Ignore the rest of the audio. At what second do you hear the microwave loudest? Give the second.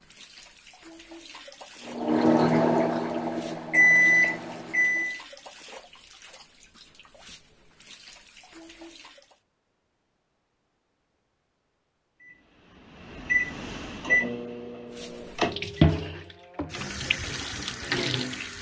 4 s.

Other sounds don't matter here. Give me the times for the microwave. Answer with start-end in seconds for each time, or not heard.
1.9-5.2, 12.2-15.8.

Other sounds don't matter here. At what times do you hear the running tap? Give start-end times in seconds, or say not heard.
0.0-9.4, 14.9-18.5.